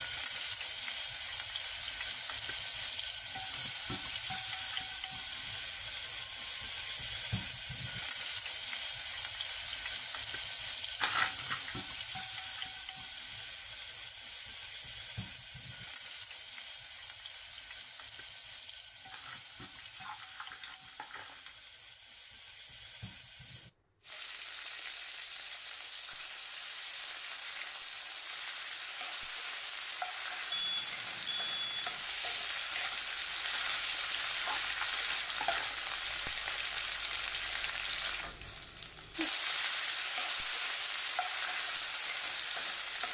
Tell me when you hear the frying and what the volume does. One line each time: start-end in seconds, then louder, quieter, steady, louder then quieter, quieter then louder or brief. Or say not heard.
0.0-43.1 quieter then louder.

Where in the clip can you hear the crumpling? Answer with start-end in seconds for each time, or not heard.
11.0-11.8, 19.1-21.6, 33.5-35.9.